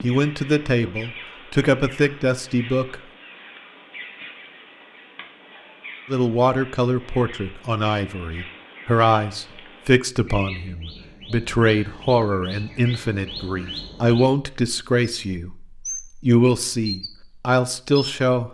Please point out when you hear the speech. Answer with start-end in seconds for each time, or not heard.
0.0-3.0, 6.0-18.4.